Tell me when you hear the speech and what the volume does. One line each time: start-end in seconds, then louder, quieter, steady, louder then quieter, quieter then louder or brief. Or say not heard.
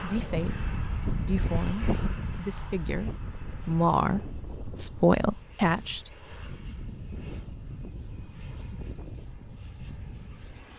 0.0-6.1 louder.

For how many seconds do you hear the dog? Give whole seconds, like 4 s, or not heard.
not heard.